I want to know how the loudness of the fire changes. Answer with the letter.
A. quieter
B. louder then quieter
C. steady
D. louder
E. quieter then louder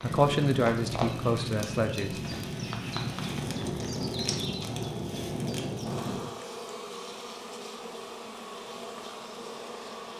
C.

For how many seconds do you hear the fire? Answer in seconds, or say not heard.
6 s.